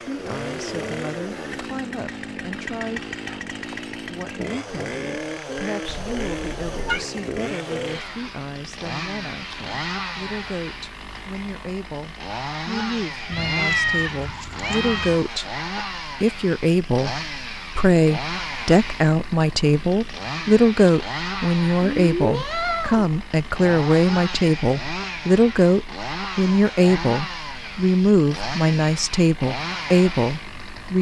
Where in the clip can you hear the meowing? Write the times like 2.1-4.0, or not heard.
5.8-7.0, 13.3-15.2, 21.8-23.1.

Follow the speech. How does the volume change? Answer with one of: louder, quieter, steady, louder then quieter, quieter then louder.
louder.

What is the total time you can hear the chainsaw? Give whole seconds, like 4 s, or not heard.
31 s.